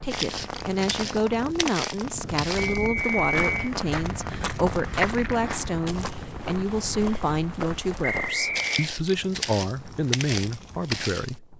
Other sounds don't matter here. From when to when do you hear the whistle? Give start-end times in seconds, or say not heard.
2.5-3.5, 8.0-8.9.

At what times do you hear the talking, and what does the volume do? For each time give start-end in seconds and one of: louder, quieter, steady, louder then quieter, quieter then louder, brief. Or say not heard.
0.0-11.5 steady.